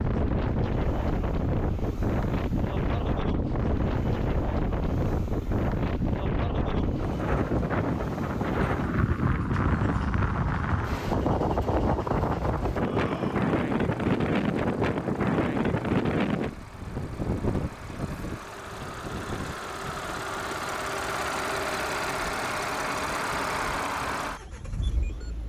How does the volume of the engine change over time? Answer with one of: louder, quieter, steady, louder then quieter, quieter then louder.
louder.